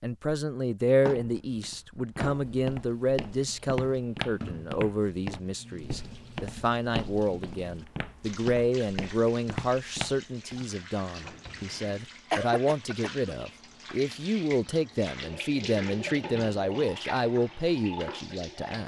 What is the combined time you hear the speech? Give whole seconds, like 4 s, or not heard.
19 s.